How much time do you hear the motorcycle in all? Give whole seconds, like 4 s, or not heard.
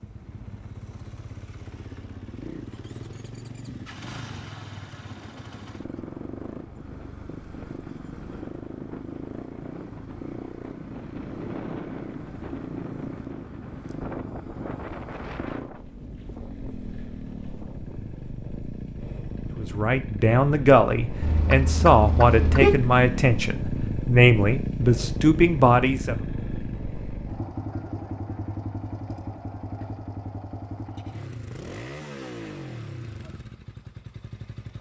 35 s.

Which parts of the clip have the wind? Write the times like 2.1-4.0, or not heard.
0.0-18.4.